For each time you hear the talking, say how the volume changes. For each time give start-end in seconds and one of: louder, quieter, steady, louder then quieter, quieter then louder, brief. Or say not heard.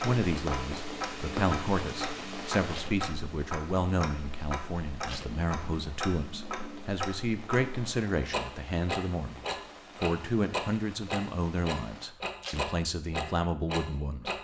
0.0-14.3 steady.